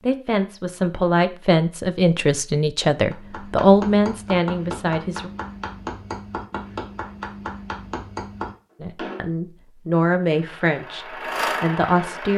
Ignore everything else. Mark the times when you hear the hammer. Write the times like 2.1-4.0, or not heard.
3.1-9.2.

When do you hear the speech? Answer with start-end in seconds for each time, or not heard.
0.0-5.3, 8.8-12.3.